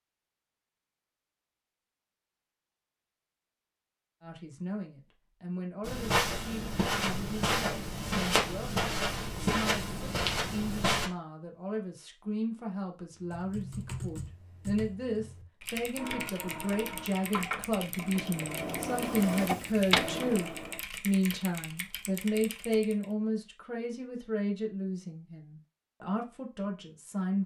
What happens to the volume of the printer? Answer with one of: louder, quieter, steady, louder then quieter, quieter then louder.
louder.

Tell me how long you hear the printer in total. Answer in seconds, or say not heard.
5 s.